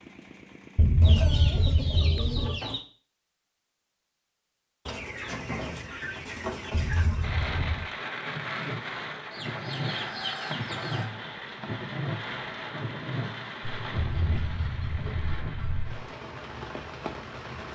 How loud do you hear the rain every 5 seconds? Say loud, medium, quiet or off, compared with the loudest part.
off, loud, loud, medium.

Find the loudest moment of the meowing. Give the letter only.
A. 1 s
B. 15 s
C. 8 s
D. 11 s
A.